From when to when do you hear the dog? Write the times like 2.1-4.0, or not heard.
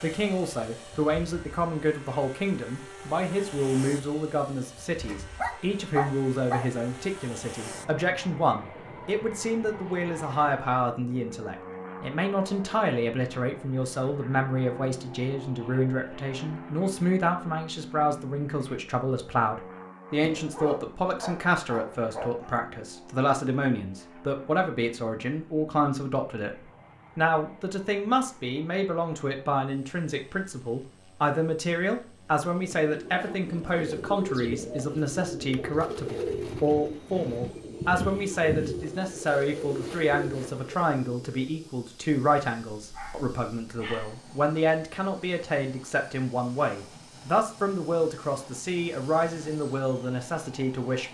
5.0-6.7, 20.1-22.6, 42.8-44.1.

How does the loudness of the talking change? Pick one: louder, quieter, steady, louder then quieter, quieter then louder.
steady.